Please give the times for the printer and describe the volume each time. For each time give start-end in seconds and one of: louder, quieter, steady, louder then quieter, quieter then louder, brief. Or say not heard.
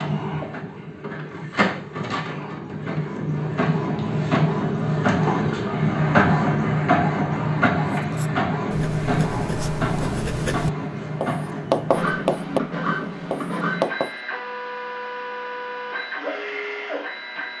0.0-17.5 louder then quieter.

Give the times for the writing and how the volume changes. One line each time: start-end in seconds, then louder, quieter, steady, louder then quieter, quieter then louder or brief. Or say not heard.
8.0-14.2 louder then quieter.